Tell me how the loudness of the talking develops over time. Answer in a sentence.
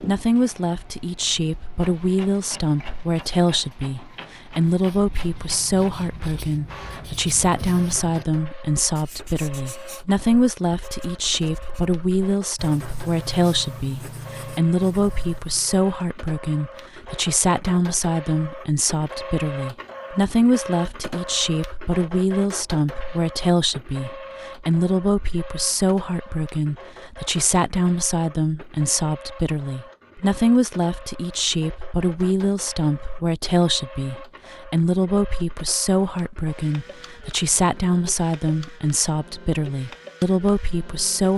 The loudness of the talking stays about the same.